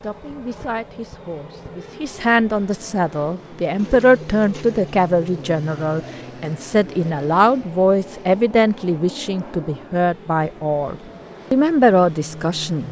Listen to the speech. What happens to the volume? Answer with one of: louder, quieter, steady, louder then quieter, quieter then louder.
louder.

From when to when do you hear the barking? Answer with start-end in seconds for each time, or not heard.
not heard.